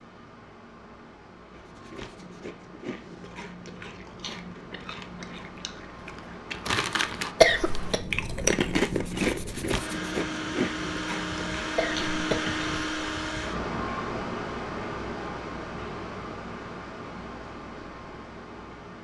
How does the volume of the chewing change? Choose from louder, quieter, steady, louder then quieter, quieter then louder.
louder then quieter.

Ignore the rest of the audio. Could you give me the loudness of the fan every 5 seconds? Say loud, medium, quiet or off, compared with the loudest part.
quiet, medium, loud, medium.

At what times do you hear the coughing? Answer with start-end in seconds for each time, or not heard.
7.4-8.0, 11.8-13.1.